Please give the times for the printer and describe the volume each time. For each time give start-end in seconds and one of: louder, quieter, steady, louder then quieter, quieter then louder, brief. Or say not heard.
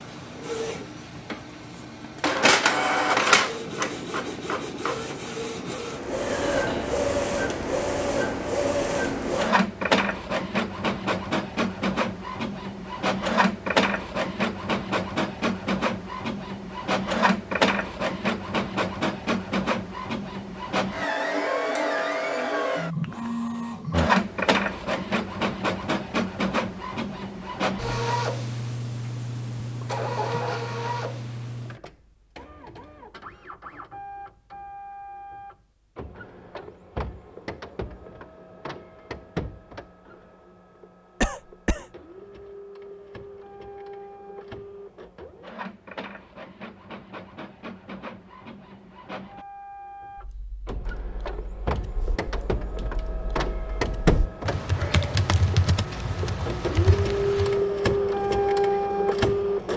0.0-59.7 quieter then louder.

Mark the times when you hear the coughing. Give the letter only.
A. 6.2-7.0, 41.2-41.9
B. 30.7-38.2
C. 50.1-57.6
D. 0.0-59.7
A.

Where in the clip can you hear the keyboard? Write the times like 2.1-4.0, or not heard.
50.1-57.6.